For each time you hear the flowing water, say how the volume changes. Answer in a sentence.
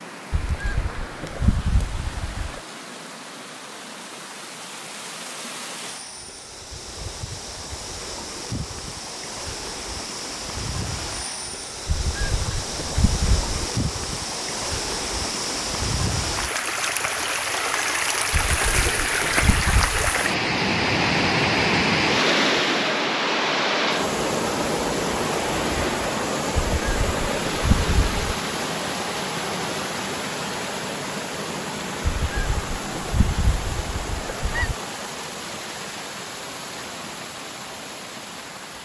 You can hear the flowing water from 0.0 to 38.8 s, getting louder then quieter.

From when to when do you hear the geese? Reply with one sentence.
The geese can be heard from 0.3 to 2.6 s, from 11.8 to 13.7 s, from 18.3 to 20.2 s, from 26.6 to 28.4 s and from 32.0 to 34.8 s.